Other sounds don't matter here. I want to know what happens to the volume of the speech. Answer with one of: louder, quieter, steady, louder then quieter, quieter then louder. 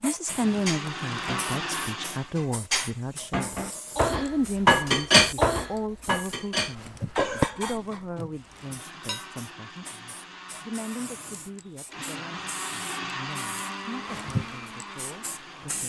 quieter.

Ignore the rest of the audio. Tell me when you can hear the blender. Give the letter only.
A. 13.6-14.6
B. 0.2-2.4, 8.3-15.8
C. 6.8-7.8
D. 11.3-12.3
B.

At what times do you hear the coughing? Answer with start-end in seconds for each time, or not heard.
6.8-7.8.